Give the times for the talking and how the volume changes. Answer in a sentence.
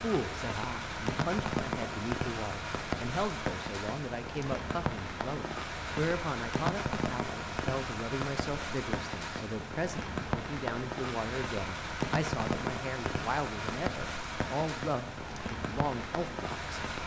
The talking can be heard from 0.0 to 16.8 s, at a steady volume.